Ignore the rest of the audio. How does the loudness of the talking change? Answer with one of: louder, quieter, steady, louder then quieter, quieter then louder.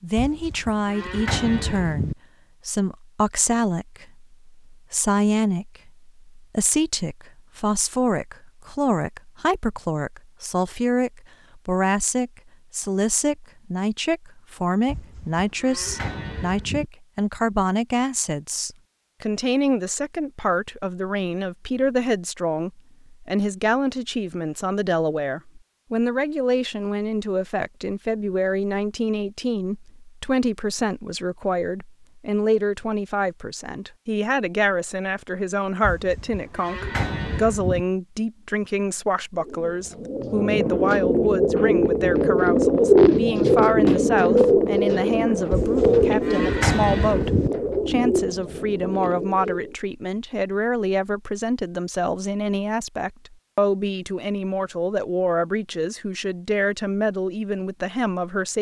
steady.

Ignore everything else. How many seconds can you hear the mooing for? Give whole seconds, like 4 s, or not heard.
8 s.